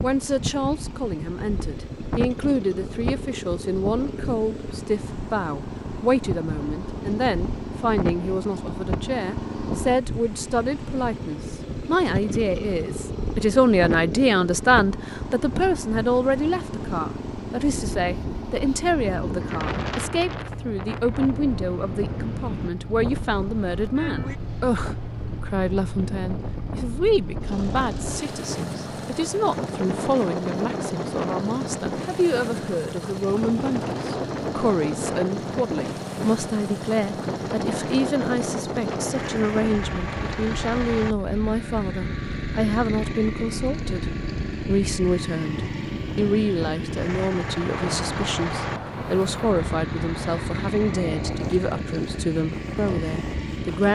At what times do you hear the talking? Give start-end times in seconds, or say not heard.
0.0-53.9.